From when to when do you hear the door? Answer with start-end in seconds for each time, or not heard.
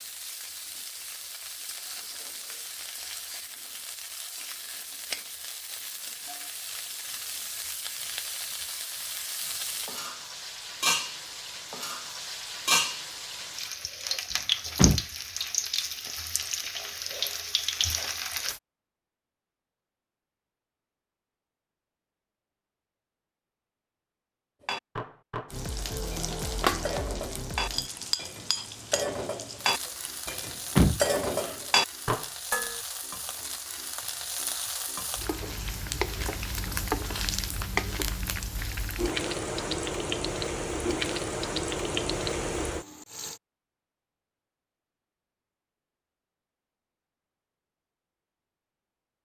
14.3-15.1, 30.3-31.5.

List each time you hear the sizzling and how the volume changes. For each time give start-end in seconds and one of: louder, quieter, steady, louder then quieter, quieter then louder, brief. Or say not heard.
0.0-18.6 louder
25.5-43.4 quieter then louder.